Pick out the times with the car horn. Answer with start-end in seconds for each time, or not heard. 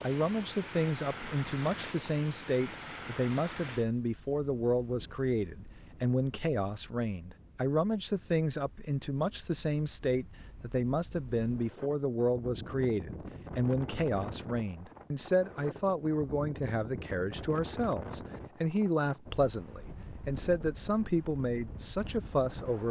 not heard.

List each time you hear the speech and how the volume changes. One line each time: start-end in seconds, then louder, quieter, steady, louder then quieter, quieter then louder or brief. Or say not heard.
0.0-22.8 steady.